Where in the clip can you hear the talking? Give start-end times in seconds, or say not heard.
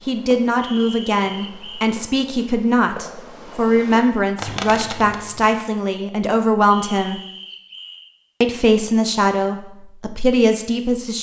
0.1-7.2, 8.4-11.1.